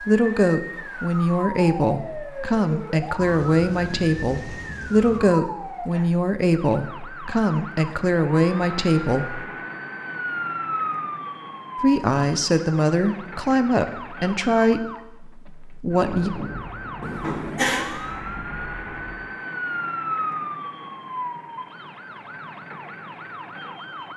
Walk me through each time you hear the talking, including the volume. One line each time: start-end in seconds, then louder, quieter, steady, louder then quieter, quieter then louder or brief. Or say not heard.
0.0-9.4 steady
11.8-16.3 quieter.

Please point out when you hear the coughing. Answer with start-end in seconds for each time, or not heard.
17.0-17.9.